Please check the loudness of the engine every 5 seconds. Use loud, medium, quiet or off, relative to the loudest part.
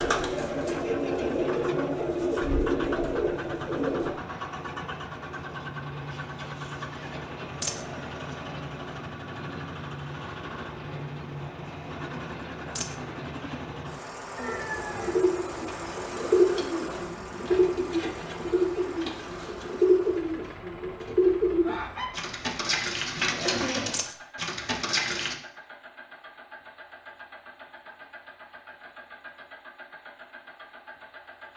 loud, loud, loud, loud, medium, medium, medium.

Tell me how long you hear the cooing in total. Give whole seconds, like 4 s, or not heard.
15 s.